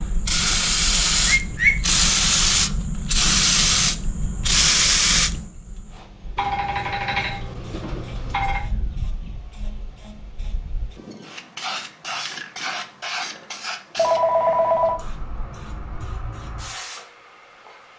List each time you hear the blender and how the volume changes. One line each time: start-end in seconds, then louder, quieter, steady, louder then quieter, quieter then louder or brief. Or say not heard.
not heard.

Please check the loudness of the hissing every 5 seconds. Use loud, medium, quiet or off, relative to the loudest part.
loud, medium, quiet, quiet.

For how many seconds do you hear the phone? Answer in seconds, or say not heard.
4 s.